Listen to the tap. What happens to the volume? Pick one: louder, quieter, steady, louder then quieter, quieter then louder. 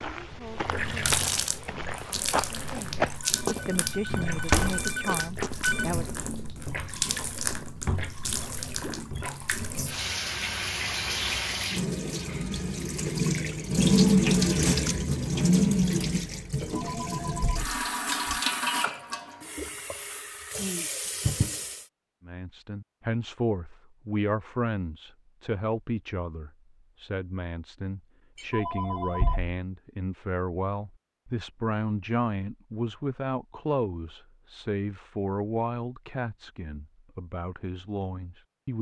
louder then quieter.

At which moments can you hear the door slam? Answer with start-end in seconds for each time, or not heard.
4.5-4.9.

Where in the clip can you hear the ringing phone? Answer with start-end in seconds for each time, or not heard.
3.5-6.0, 16.6-18.4, 28.4-29.6.